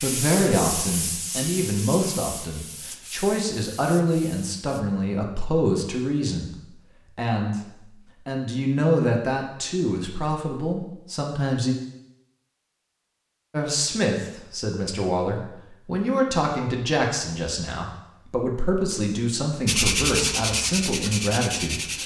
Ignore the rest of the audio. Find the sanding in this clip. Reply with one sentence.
The sanding can be heard from 0.0 to 4.6 s and from 19.6 to 22.0 s.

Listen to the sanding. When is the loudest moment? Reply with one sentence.
The loudest moment of the sanding is at 20 seconds.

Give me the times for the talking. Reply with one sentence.
You can hear the talking from 0.0 to 6.5 s, from 7.2 to 7.6 s, from 8.2 to 11.8 s and from 13.5 to 22.0 s.